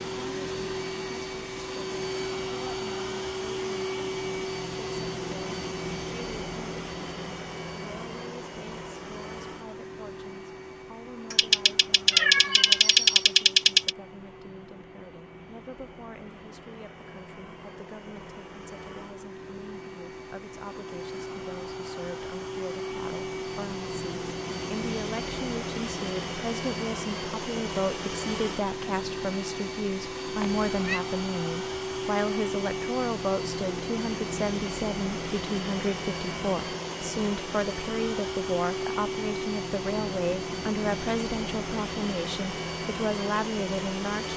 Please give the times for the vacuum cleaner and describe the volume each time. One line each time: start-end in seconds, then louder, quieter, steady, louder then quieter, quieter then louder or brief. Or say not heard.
0.0-44.3 quieter then louder.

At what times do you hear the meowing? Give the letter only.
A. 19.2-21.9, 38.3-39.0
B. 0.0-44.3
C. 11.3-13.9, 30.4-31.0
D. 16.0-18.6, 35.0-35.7
C.